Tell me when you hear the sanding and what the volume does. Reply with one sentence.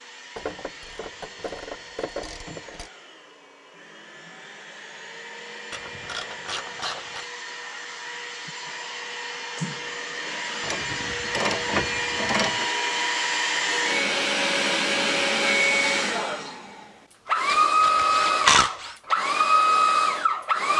The sanding can't be heard in this clip.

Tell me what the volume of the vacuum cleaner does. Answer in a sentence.
The loudness of the vacuum cleaner goes up.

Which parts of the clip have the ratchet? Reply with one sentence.
The ratchet can be heard from 0.3 to 2.9 s, from 5.7 to 7.2 s, from 10.6 to 12.7 s and from 17.4 to 18.9 s.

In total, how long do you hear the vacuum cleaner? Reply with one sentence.
You can hear the vacuum cleaner for 21 seconds altogether.